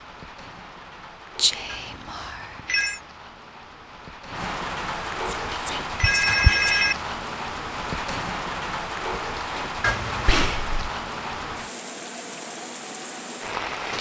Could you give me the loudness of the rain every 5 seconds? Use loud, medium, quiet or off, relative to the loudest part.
medium, loud, loud.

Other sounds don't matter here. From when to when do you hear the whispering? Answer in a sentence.
You can hear the whispering from 1.4 to 3.0 s, from 5.2 to 6.8 s and from 10.2 to 10.9 s.